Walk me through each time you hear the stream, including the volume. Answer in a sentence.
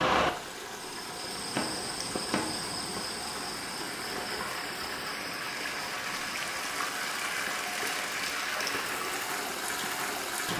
You can hear the stream from 0.1 to 10.5 s, getting louder.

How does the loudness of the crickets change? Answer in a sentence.
The loudness of the crickets goes down.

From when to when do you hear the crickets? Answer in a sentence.
The crickets can be heard from 0.0 to 10.5 s.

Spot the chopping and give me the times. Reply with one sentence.
The chopping can be heard from 1.5 to 3.0 s.